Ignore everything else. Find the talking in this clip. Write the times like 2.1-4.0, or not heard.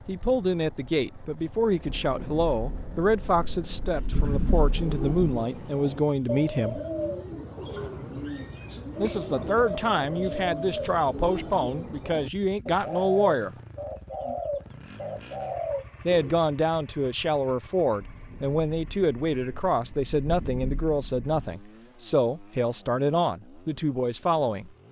0.1-6.8, 8.9-13.5, 16.1-24.7.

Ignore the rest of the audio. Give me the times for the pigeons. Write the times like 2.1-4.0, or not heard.
4.5-16.4.